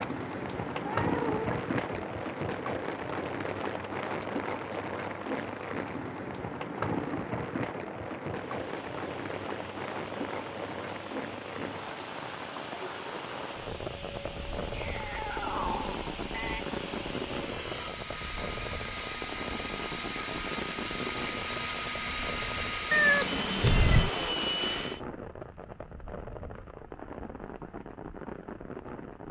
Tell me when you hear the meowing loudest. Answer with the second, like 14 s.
23 s.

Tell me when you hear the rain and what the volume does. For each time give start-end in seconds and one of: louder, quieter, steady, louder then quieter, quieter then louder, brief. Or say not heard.
0.0-29.2 quieter.